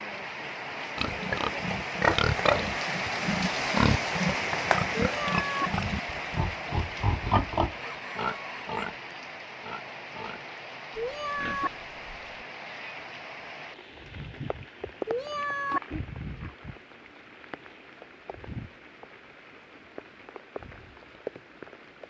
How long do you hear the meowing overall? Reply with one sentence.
The meowing can be heard for 2 seconds in total.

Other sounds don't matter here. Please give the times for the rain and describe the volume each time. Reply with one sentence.
You can hear the rain from 0.0 to 22.0 s, getting quieter.